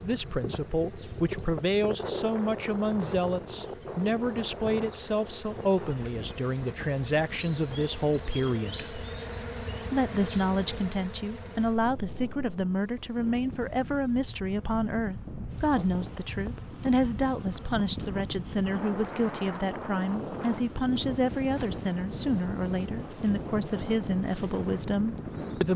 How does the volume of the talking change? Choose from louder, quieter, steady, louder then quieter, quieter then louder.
steady.